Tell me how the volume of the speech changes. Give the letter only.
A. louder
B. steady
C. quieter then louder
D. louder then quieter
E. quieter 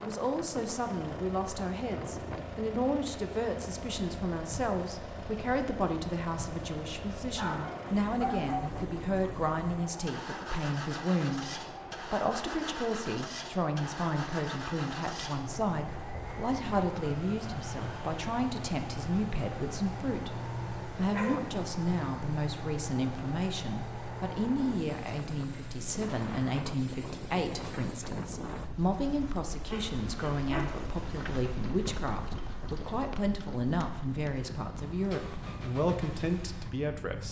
B.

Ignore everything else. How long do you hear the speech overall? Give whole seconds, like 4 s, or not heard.
37 s.